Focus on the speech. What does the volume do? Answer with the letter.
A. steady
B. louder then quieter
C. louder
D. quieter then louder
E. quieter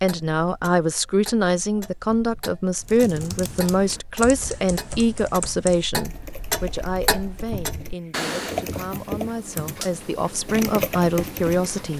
D.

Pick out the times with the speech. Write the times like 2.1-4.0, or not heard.
0.0-11.9.